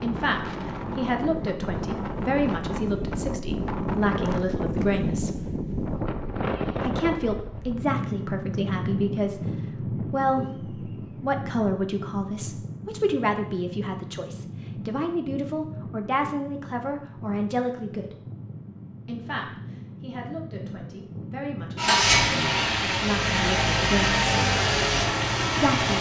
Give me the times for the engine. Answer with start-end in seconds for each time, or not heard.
21.8-25.9.